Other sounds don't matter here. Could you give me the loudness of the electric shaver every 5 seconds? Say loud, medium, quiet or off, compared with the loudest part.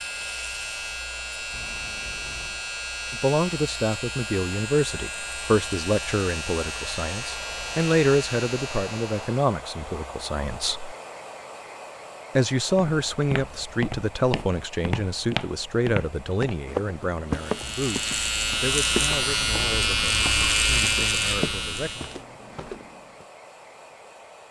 medium, medium, off, loud, loud.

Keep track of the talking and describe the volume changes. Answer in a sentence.
The volume of the talking goes down.